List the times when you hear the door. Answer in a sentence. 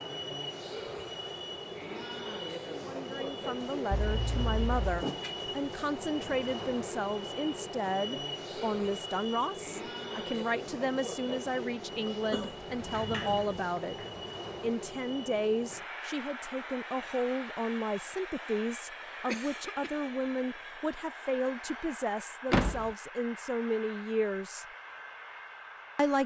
You can hear the door from 4.8 to 5.5 s, from 12.7 to 14.2 s and from 22.5 to 22.9 s.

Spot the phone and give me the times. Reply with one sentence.
The phone can't be heard in this clip.